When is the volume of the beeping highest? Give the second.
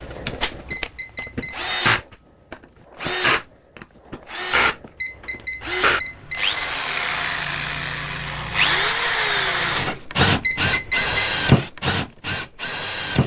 11 s.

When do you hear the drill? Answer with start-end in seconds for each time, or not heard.
0.0-13.2.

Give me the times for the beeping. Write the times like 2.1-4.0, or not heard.
0.7-1.7, 5.0-6.8, 10.4-11.2.